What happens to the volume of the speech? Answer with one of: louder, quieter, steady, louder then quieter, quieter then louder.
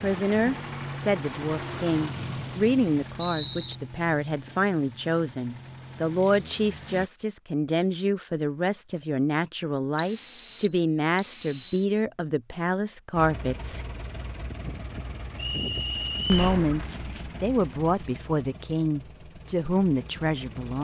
steady.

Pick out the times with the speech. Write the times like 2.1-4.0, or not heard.
0.0-13.8, 16.3-20.7.